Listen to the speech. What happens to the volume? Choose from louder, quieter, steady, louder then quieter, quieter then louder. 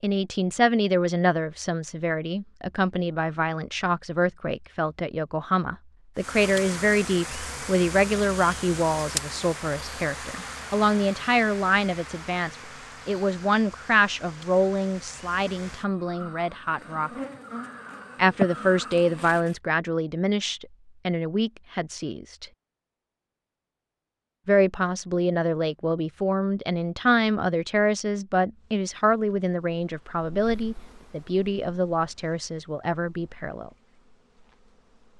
steady.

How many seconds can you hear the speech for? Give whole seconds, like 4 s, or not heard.
31 s.